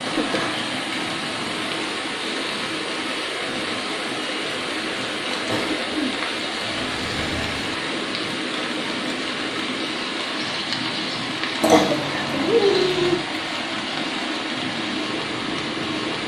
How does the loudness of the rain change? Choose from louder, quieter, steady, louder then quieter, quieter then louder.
steady.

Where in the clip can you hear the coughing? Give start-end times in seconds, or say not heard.
0.1-0.7, 5.5-7.8, 11.6-13.2.